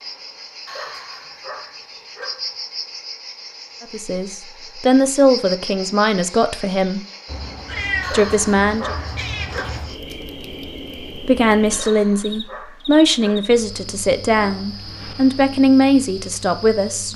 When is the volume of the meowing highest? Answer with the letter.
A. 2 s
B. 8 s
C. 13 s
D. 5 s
B.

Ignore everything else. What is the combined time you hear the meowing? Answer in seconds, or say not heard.
3 s.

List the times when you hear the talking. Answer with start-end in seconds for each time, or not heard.
3.8-7.0, 8.1-8.9, 11.2-17.1.